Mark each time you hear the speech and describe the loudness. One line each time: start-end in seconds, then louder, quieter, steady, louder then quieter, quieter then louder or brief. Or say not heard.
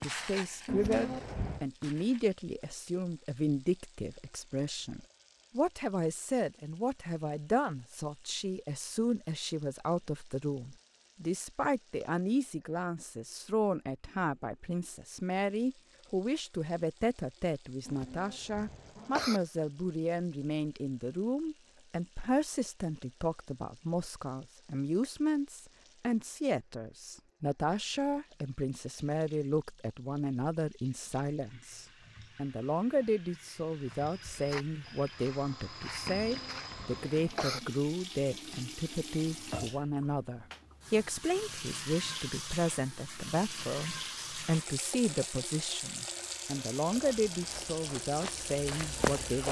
0.0-49.4 steady.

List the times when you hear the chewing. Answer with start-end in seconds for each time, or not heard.
not heard.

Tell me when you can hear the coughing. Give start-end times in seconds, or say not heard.
0.7-1.6, 17.9-19.4, 36.2-37.6.